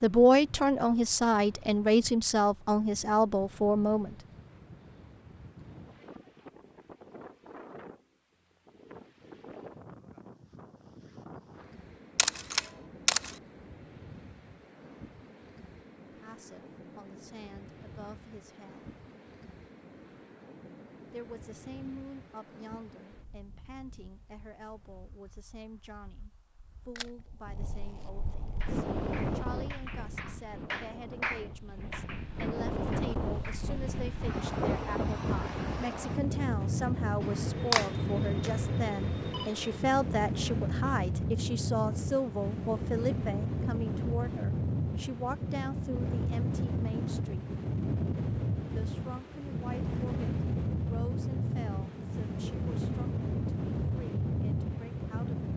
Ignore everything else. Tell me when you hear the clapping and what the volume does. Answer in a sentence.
You can hear the clapping from 28.6 to 33.7 s, getting louder then quieter.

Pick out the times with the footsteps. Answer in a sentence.
The footsteps can't be heard in this clip.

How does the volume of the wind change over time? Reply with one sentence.
The loudness of the wind goes up.